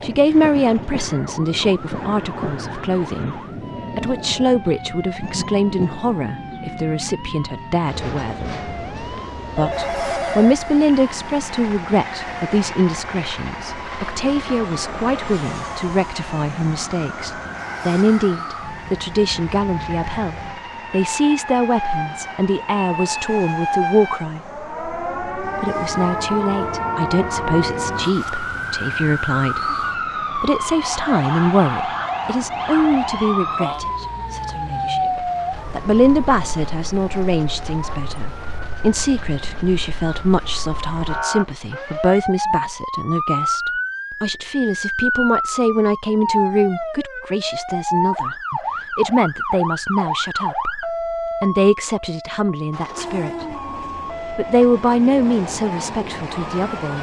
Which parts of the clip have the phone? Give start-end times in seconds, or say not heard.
9.6-11.0.